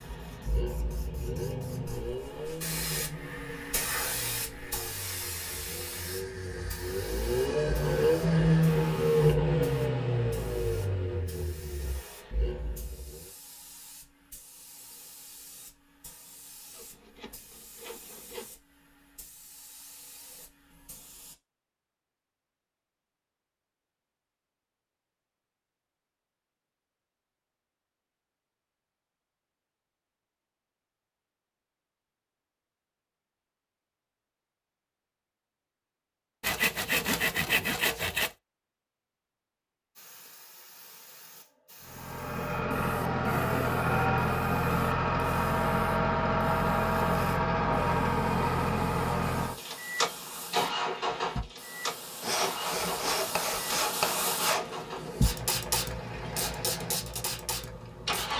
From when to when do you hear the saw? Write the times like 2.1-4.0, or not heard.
6.0-8.7, 16.7-18.6, 36.4-38.3, 52.2-54.8.